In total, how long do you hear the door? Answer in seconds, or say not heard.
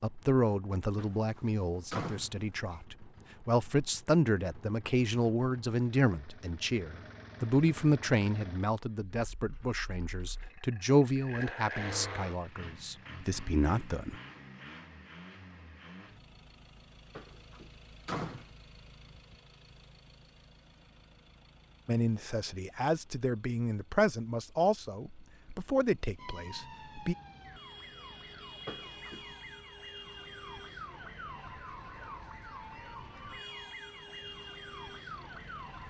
4 s.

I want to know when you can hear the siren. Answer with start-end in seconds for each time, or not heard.
26.1-35.8.